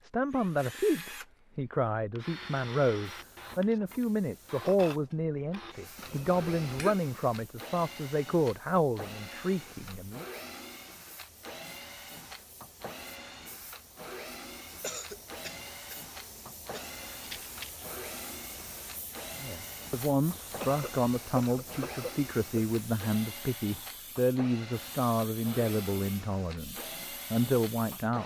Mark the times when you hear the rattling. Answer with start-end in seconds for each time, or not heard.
17.2-17.9.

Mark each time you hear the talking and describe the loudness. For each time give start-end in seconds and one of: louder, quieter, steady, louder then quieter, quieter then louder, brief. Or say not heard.
0.0-10.2 steady
19.4-28.2 steady.